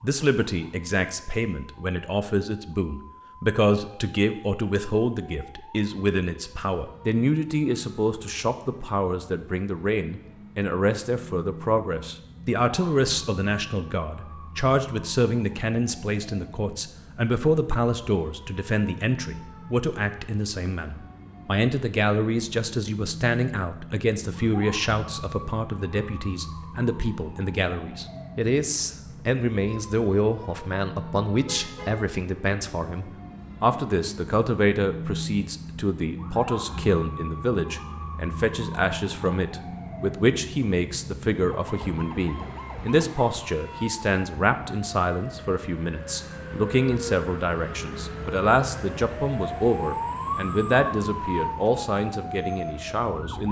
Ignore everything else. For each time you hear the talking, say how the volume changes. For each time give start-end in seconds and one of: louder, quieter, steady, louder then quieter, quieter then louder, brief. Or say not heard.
0.0-53.4 steady.